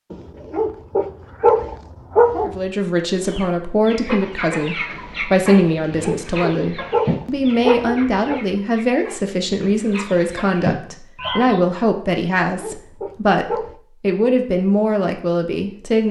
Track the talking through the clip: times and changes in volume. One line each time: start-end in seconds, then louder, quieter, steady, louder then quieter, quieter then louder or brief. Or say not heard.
2.4-16.0 steady.